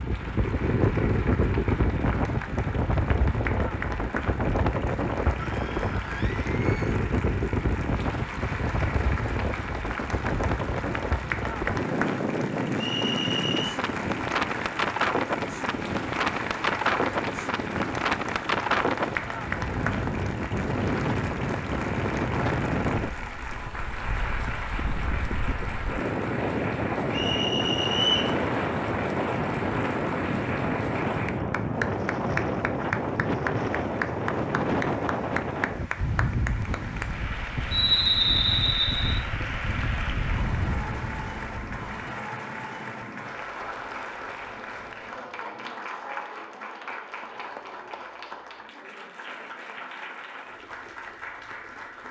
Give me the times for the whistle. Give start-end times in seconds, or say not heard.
12.8-13.8, 27.1-28.4, 37.7-39.2.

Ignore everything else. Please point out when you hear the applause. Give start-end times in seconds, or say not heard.
0.0-52.0.